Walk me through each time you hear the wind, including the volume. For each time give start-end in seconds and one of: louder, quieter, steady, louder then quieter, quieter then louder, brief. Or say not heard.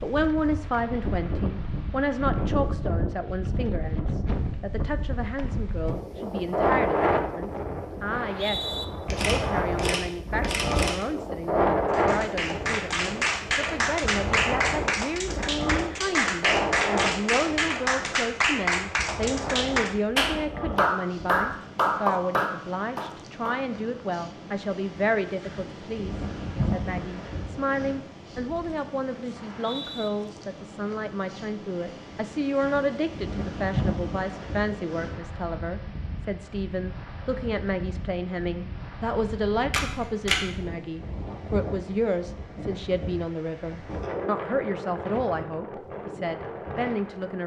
0.0-47.4 quieter.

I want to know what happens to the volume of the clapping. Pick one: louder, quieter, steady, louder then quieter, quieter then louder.
steady.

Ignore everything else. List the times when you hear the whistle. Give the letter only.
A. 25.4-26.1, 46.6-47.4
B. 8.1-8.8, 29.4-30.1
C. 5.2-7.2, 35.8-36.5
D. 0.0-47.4
B.